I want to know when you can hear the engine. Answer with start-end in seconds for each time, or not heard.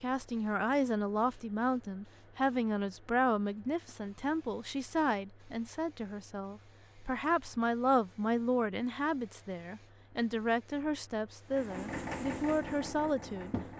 11.4-13.7.